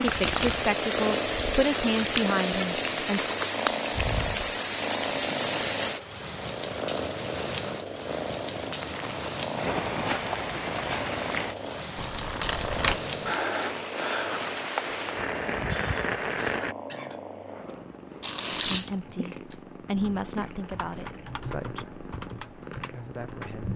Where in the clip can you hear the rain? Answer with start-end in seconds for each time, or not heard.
0.0-16.8.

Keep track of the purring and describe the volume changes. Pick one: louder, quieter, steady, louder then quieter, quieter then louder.
quieter.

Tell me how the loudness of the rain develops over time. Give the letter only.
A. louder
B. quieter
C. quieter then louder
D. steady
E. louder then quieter
D.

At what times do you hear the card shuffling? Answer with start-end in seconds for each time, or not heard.
0.1-0.7, 11.9-13.0, 18.2-18.9.